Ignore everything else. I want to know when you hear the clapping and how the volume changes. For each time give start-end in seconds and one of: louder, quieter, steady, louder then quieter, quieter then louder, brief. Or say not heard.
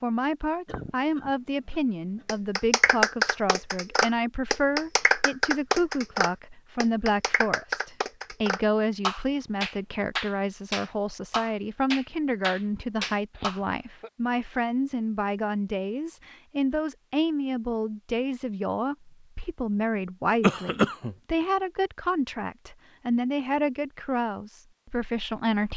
2.2-13.6 quieter.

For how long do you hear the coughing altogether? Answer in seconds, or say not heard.
3 s.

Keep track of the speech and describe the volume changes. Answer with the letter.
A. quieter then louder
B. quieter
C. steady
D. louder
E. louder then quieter
C.